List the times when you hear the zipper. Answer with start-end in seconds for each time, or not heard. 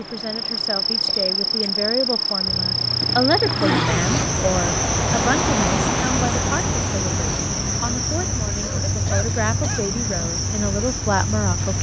2.5-4.3.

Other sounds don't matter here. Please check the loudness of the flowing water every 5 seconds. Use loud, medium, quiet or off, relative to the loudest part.
medium, loud, quiet.